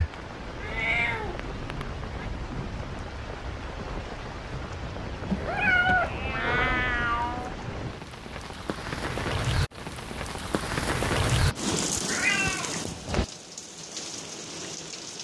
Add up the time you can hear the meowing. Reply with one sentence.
You can hear the meowing for 6 seconds altogether.